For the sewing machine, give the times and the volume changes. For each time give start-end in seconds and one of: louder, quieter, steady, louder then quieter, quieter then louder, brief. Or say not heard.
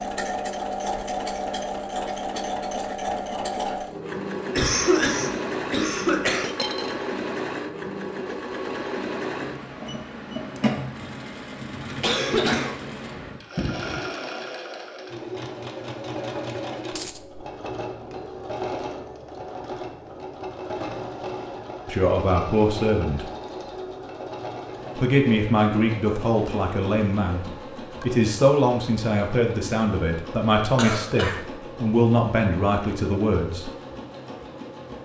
0.0-34.9 quieter.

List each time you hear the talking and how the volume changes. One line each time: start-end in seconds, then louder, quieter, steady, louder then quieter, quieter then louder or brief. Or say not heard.
21.9-23.3 brief
24.9-33.7 steady.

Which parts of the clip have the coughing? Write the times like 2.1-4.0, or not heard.
4.5-6.5, 12.0-14.0, 30.8-31.4.